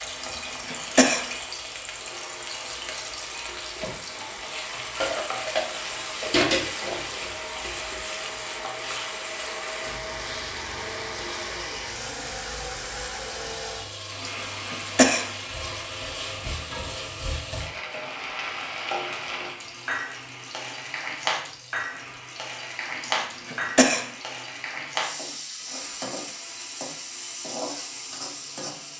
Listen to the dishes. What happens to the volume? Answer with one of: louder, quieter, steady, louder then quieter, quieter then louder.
louder then quieter.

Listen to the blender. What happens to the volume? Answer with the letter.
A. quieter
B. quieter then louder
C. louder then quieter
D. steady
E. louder
C.